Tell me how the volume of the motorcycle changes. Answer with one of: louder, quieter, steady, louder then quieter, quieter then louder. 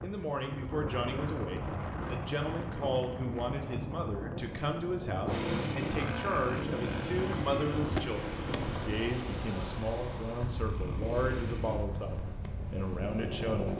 quieter.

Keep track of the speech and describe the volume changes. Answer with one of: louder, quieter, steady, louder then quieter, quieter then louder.
steady.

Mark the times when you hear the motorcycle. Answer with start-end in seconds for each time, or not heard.
5.2-13.7.